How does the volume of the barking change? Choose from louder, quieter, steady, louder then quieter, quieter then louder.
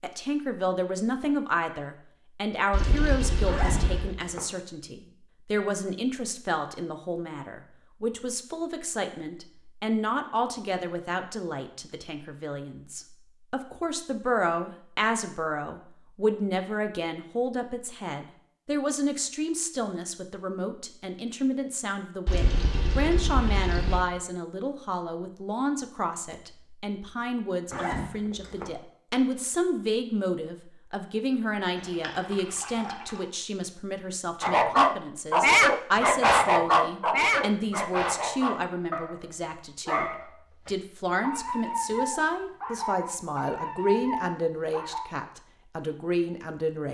quieter.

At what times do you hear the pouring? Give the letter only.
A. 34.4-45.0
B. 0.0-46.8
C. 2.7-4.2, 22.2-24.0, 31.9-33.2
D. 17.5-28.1
C.